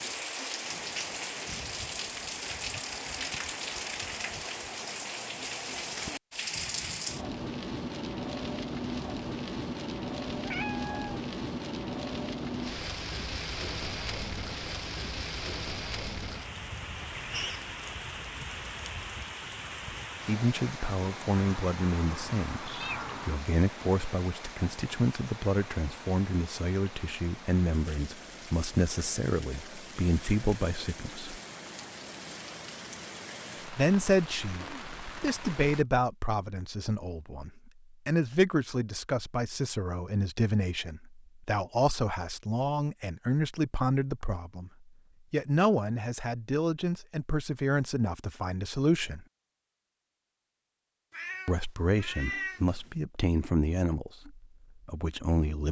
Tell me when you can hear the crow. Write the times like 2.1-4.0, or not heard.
not heard.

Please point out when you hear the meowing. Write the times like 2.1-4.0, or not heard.
10.3-11.2, 21.4-23.4, 51.1-53.0.